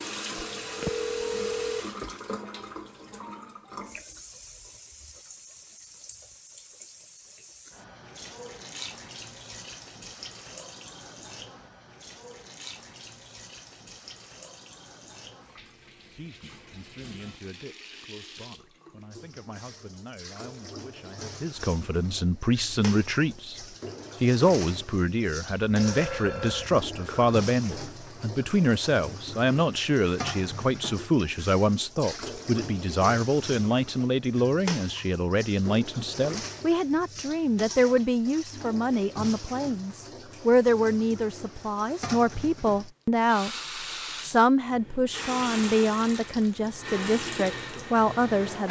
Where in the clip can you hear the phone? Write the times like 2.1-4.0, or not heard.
0.3-1.9, 25.6-27.4.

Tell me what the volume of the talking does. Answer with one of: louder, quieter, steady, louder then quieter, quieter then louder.
louder.